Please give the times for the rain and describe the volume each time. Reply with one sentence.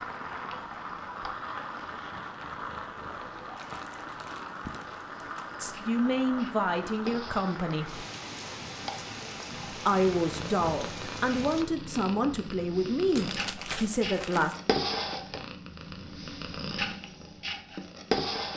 The rain can be heard from 0.0 to 11.7 s, at a steady volume.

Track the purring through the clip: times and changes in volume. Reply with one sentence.
The purring can be heard from 0.0 to 18.5 s, getting louder.